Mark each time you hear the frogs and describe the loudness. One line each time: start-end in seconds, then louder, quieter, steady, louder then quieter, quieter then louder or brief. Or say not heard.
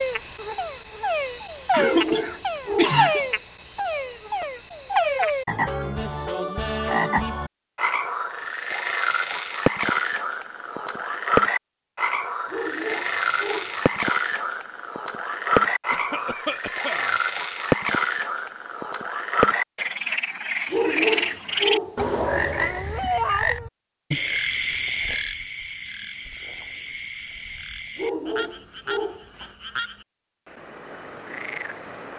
0.0-32.1 quieter.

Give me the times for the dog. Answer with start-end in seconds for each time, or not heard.
1.8-3.3, 12.5-14.1, 20.7-22.2, 27.9-29.5.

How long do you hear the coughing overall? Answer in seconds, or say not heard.
4 s.